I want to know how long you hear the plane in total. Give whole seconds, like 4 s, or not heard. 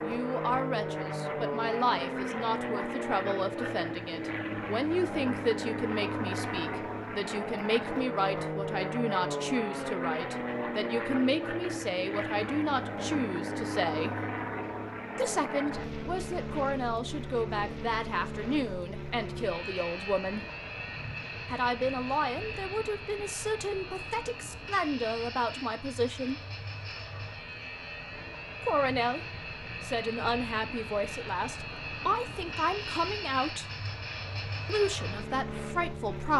36 s.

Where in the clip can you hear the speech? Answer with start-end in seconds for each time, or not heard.
0.0-14.2, 15.2-20.4, 21.4-26.4, 28.6-29.2, 29.8-33.6, 34.6-36.3.